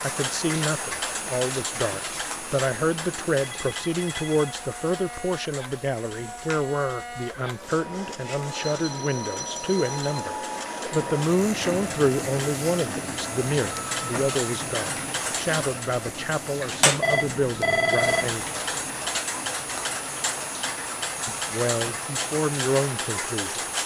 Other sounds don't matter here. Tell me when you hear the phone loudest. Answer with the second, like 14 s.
18 s.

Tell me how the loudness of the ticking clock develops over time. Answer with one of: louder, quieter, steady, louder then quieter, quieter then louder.
quieter then louder.